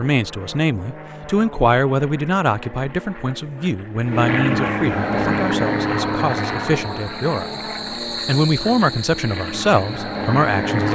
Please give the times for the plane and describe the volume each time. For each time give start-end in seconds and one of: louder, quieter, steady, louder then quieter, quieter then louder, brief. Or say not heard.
0.0-10.9 louder then quieter.